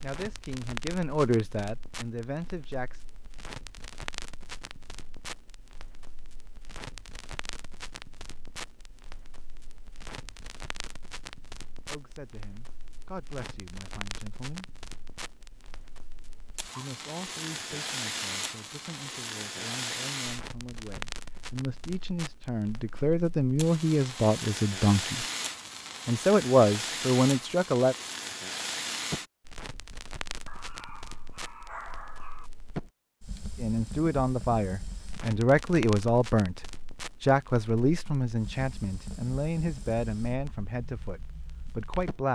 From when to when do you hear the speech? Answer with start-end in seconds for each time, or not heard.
0.0-3.0, 11.8-14.7, 16.8-25.2, 26.1-27.9, 33.5-36.6, 37.2-42.3.